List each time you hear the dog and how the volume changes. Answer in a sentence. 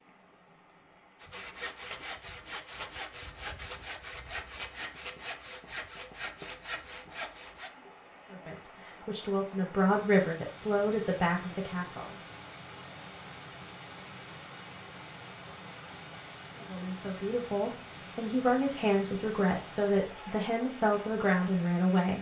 You can't hear the dog here.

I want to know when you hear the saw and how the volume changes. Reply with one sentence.
You can hear the saw from 1.2 to 7.8 s, at a steady volume.